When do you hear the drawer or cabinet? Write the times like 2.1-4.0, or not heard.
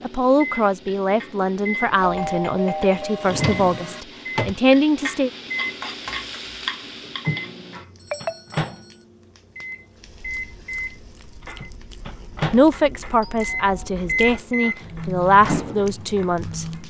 3.2-4.5.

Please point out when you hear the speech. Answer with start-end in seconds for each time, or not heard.
0.0-5.3, 12.5-16.6.